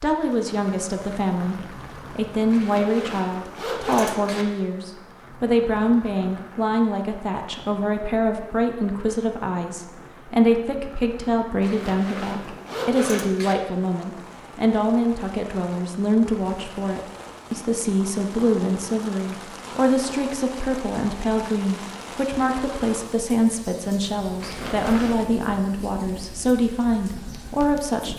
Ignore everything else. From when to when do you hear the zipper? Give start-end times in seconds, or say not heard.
2.5-4.5, 11.6-13.6, 24.4-25.3.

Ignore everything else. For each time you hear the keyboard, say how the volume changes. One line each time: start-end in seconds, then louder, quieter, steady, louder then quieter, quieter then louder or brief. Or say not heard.
not heard.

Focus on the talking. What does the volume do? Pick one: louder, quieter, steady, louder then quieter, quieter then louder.
steady.